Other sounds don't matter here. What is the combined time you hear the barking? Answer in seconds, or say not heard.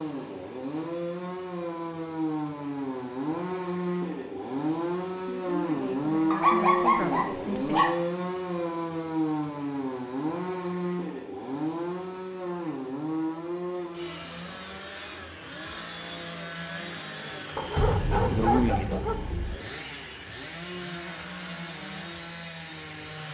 4 s.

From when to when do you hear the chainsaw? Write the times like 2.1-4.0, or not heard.
0.0-23.2.